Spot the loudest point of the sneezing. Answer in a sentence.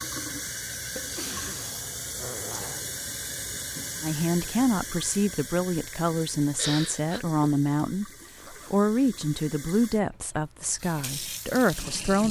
The volume of the sneezing peaks at 7 seconds.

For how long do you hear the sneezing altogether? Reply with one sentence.
The sneezing can be heard for 2 seconds in total.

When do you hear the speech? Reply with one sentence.
You can hear the speech from 4.0 to 12.2 s.